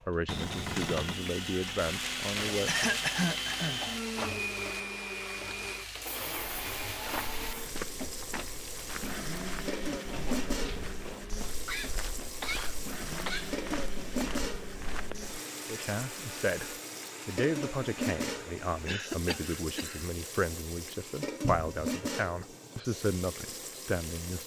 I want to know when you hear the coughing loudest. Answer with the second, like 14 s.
3 s.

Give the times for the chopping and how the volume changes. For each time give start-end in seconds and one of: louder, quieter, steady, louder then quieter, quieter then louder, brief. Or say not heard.
not heard.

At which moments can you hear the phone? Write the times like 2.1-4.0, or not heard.
not heard.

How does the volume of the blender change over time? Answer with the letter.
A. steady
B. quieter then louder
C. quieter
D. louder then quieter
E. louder
C.